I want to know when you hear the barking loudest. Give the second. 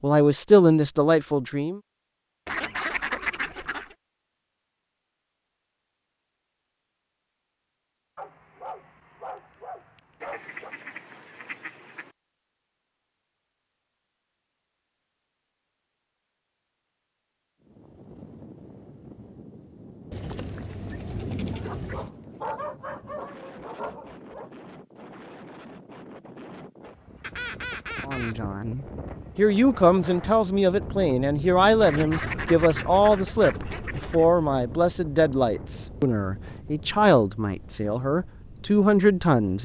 23 s.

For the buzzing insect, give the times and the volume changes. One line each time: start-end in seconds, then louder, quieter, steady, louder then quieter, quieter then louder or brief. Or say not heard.
not heard.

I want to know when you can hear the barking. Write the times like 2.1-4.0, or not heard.
8.2-10.8, 21.5-24.5.